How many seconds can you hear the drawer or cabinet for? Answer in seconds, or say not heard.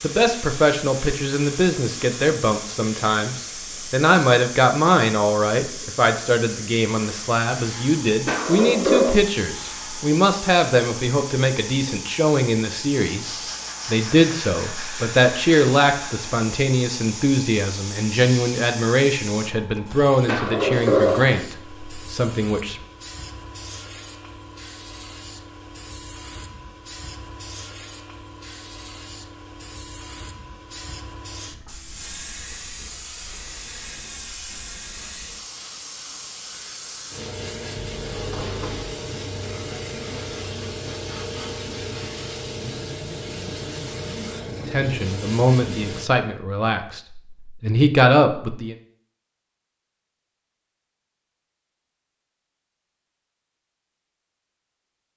3 s.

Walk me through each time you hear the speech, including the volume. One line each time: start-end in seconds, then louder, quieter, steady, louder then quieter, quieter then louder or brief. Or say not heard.
0.0-22.8 steady
44.7-48.8 quieter then louder.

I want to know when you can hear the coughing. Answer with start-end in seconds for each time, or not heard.
not heard.